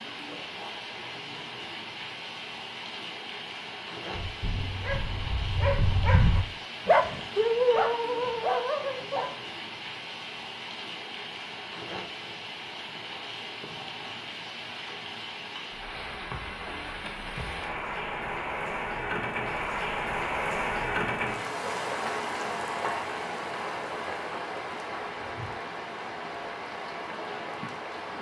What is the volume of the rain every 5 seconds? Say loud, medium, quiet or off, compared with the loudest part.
medium, medium, medium, loud, loud, medium.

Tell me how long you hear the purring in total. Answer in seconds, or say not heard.
not heard.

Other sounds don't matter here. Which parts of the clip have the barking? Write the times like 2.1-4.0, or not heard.
4.1-9.3.